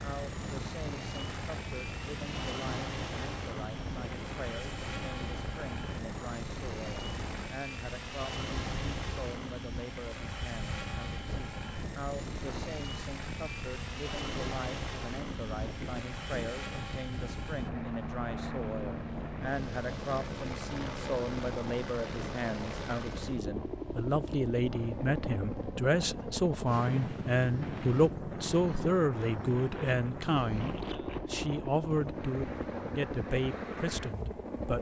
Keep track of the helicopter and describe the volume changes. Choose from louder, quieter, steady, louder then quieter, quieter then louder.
steady.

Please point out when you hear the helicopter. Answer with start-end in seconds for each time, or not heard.
0.0-34.7.